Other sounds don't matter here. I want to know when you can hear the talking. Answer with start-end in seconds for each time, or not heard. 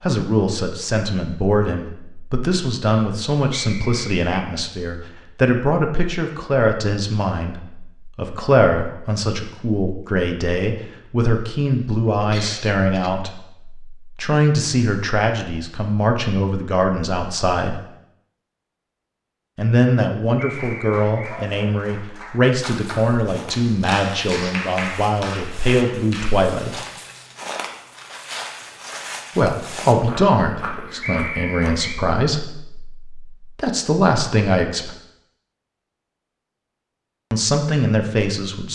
0.0-17.8, 19.6-26.8, 29.4-34.9, 37.3-38.6.